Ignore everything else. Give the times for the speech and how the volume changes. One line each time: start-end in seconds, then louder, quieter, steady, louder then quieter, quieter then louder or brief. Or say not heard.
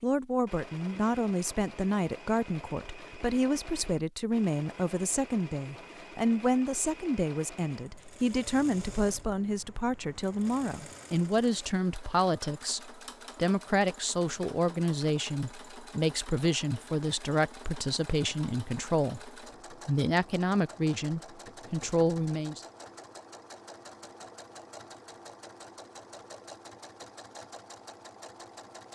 0.0-22.6 steady.